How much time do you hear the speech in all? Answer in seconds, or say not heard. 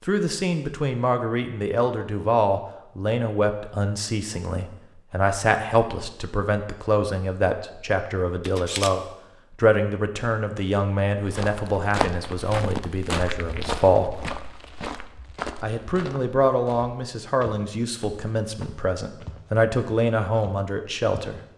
20 s.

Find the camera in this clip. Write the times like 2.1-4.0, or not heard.
8.4-8.9.